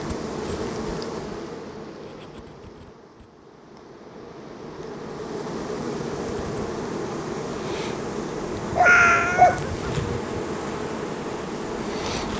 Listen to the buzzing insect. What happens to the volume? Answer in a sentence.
The loudness of the buzzing insect goes down, then up.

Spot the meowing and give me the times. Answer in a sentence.
You can hear the meowing from 8.8 to 9.6 s.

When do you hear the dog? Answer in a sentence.
You can hear the dog from 8.6 to 10.4 s.